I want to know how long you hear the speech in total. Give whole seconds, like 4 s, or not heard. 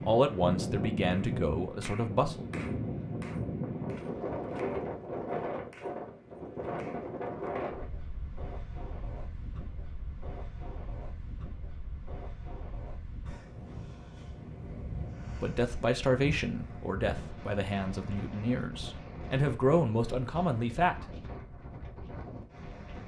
8 s.